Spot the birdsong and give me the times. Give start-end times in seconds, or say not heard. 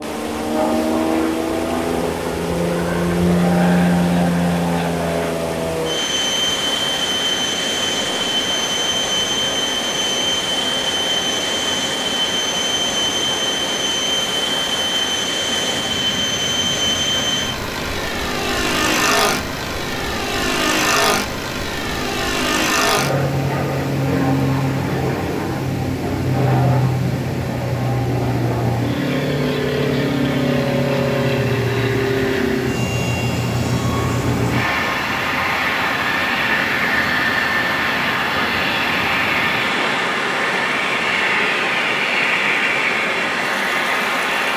not heard.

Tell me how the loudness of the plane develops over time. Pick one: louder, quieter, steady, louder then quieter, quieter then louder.
steady.